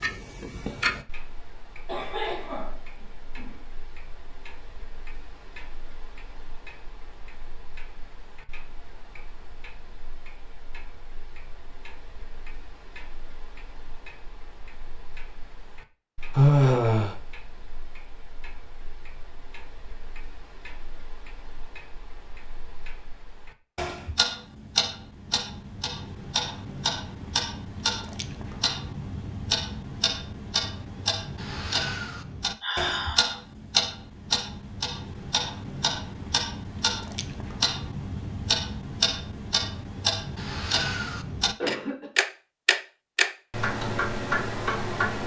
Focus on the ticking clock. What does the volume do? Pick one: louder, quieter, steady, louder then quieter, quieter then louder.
quieter then louder.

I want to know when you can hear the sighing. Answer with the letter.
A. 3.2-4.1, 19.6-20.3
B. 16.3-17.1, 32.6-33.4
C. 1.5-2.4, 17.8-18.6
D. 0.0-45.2
B.